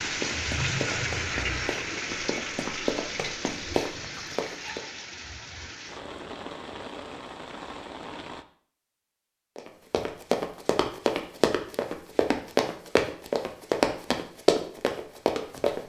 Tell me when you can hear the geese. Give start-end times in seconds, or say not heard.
not heard.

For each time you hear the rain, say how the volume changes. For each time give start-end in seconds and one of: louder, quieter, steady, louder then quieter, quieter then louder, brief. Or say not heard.
0.0-8.4 quieter.